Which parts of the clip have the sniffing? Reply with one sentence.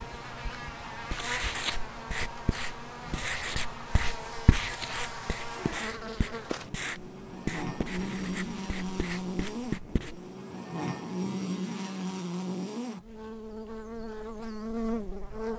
You can't hear the sniffing here.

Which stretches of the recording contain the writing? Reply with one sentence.
The writing can be heard from 0.0 to 10.3 s.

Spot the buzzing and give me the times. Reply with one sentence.
You can hear the buzzing from 0.0 to 15.5 s.